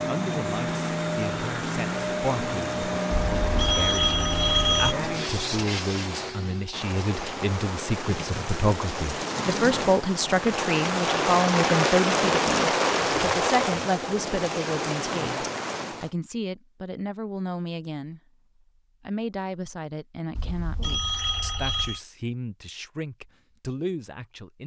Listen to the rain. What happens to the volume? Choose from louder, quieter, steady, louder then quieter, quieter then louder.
louder.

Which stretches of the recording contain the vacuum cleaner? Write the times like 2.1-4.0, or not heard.
0.0-6.8.